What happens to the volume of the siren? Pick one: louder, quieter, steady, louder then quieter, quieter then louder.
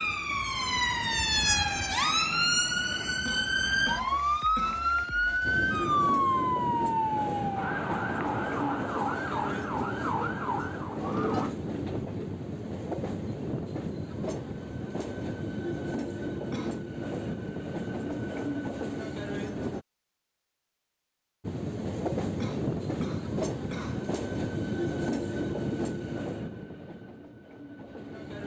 quieter.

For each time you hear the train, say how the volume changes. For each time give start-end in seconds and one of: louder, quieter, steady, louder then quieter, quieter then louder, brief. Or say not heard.
5.4-19.9 steady
21.4-28.4 quieter.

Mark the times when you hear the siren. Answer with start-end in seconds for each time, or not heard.
0.0-11.6.